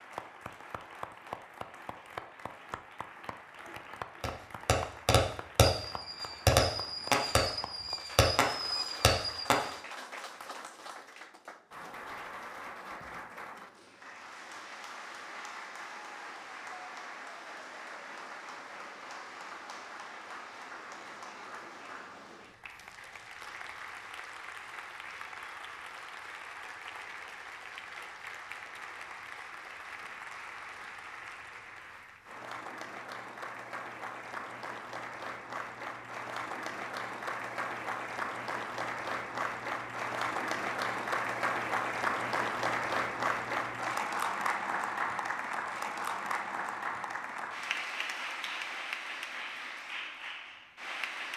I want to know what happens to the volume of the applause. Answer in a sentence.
The loudness of the applause goes up.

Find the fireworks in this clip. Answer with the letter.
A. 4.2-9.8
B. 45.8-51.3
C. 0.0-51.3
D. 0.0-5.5
A.